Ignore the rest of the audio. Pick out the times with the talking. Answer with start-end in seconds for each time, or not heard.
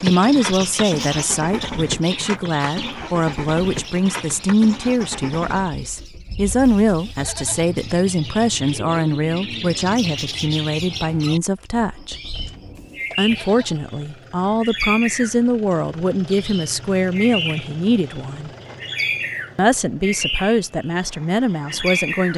0.0-12.2, 13.2-18.5, 19.6-22.3.